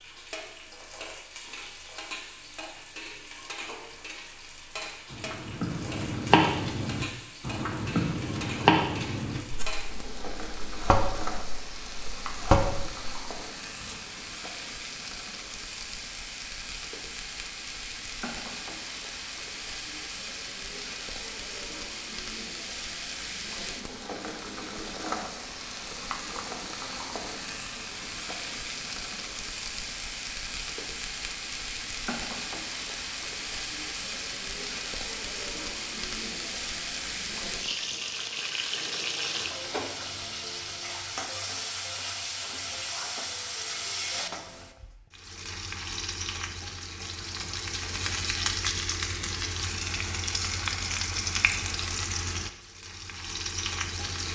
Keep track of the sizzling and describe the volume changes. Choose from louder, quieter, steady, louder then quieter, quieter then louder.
louder.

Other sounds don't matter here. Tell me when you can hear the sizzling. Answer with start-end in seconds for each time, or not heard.
0.0-54.3.